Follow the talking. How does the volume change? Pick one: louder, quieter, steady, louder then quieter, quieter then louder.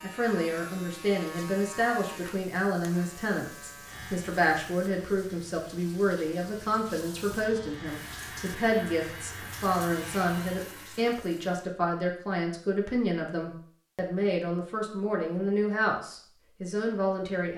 steady.